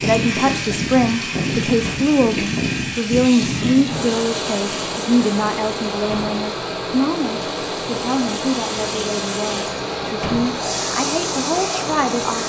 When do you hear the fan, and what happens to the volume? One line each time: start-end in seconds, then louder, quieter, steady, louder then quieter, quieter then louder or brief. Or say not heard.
0.0-12.4 steady.